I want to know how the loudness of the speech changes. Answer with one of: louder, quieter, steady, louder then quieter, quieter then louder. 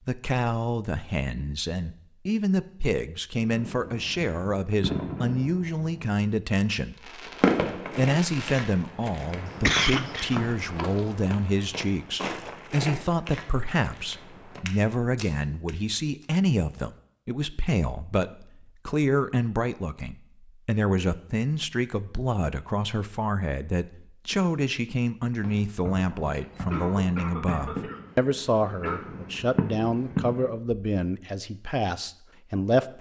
steady.